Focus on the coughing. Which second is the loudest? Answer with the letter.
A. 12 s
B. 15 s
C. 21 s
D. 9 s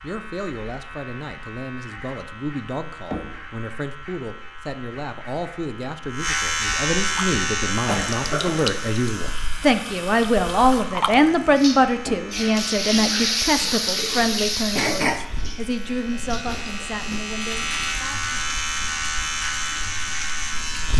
B.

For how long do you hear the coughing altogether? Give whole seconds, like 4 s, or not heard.
2 s.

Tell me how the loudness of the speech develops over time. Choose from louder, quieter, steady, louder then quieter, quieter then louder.
louder then quieter.